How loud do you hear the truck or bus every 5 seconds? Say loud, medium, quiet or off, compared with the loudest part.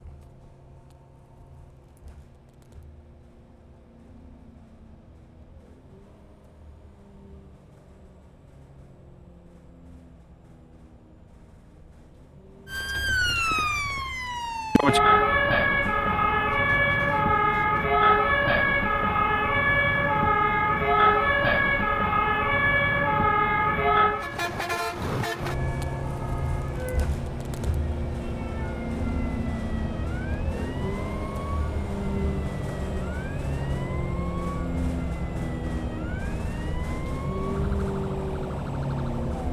quiet, quiet, quiet, quiet, medium, loud, loud, loud.